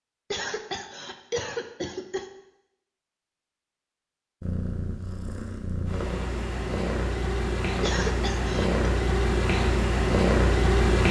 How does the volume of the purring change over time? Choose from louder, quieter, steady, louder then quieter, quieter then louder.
louder.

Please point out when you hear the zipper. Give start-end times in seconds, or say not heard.
not heard.